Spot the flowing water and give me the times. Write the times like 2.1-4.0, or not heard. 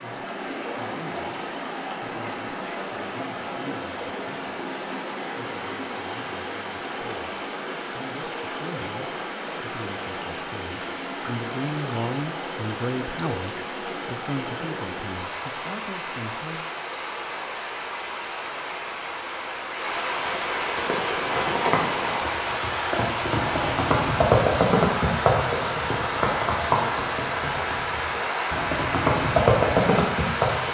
0.0-30.6.